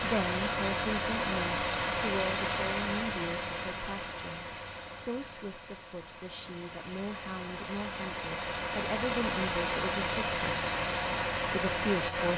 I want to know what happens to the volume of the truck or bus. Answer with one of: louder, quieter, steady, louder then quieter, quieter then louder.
quieter then louder.